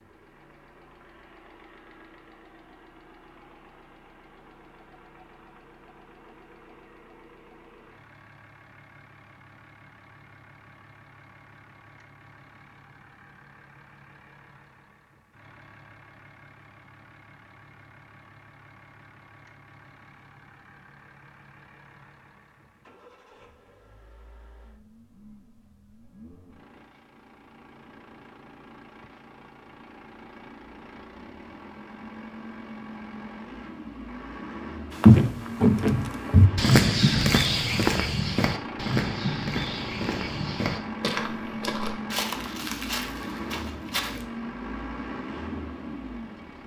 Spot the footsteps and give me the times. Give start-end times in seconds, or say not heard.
35.0-44.2.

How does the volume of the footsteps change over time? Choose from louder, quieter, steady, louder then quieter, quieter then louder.
quieter.